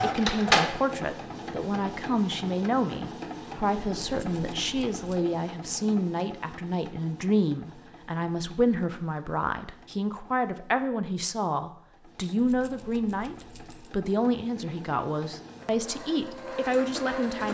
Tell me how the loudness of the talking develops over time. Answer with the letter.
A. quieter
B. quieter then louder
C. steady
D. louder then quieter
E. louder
C.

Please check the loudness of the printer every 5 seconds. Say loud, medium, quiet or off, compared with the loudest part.
loud, quiet, quiet, medium.